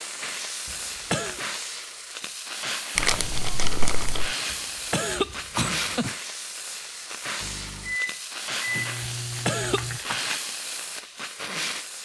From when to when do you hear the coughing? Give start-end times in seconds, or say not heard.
0.7-1.4, 4.5-6.2, 9.0-10.2.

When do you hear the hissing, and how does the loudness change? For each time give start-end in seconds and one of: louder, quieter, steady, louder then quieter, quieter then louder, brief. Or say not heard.
0.0-11.9 steady.